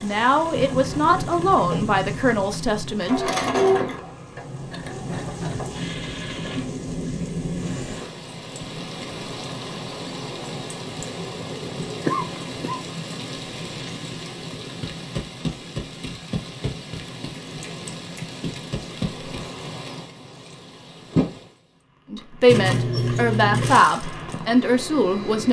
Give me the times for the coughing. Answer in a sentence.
You can hear the coughing from 12.0 to 12.8 s.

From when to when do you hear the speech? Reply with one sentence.
The speech can be heard from 0.0 to 3.2 s and from 22.1 to 25.4 s.